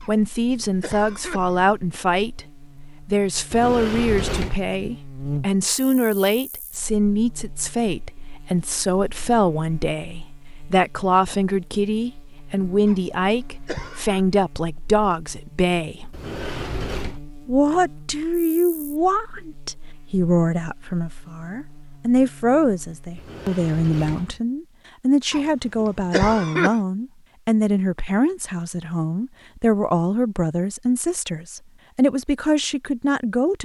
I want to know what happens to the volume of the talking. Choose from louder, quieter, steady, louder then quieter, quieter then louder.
steady.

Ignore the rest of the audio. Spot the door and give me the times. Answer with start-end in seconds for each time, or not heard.
3.5-4.6, 16.1-17.2, 23.1-24.4.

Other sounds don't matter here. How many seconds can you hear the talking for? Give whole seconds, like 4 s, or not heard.
32 s.